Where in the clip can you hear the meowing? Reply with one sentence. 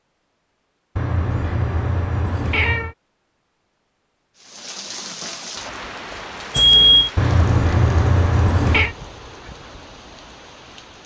You can hear the meowing from 0.9 to 3.0 s and from 7.2 to 8.9 s.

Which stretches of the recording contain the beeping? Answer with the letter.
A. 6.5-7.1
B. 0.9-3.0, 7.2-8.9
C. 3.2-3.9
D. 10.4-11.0
A.